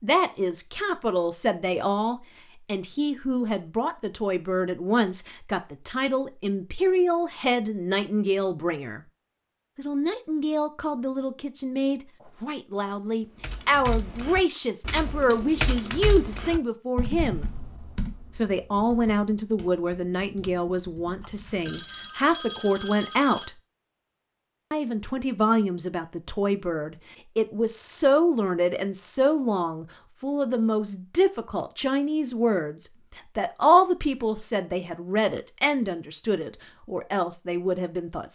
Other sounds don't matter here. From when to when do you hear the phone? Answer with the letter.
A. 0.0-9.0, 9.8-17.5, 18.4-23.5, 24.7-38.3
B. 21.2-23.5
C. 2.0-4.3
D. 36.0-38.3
B.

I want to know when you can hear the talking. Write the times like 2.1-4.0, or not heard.
0.0-9.0, 9.8-17.5, 18.4-23.5, 24.7-38.3.